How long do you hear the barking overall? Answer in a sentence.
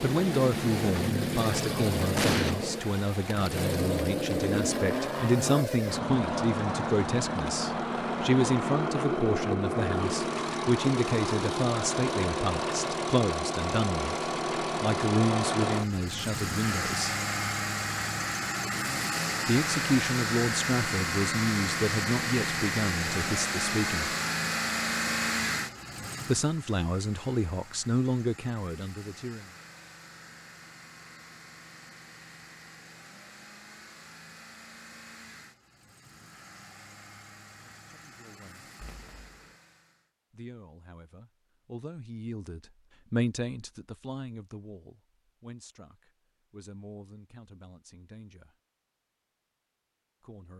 The barking can't be heard in this clip.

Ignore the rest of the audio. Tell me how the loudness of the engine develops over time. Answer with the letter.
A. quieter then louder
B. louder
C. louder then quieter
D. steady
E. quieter
E.